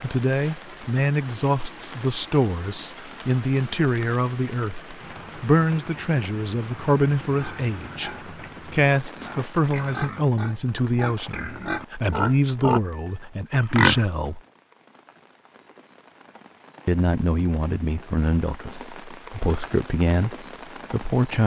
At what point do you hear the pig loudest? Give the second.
14 s.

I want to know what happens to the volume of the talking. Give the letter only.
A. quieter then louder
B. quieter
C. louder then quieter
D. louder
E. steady
E.